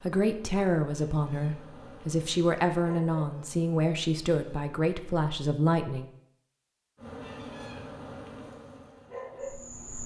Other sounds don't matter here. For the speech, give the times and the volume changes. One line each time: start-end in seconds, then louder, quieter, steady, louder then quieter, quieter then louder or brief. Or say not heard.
0.0-6.1 steady.